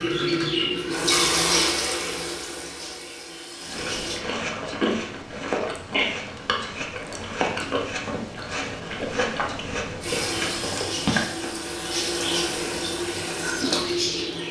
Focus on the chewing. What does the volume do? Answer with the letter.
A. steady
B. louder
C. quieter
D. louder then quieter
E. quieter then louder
C.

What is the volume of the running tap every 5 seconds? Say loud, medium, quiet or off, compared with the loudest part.
loud, off, loud.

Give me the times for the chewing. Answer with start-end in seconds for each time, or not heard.
3.6-14.2.